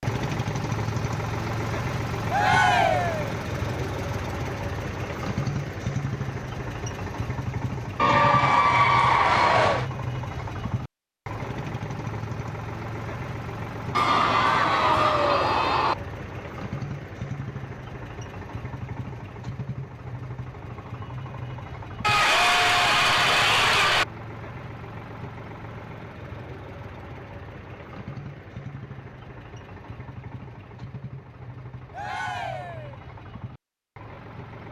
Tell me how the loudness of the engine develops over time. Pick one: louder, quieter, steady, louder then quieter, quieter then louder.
quieter.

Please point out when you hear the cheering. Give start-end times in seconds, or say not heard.
2.3-3.3, 8.0-9.8, 13.9-15.9, 22.0-24.1, 31.9-33.0.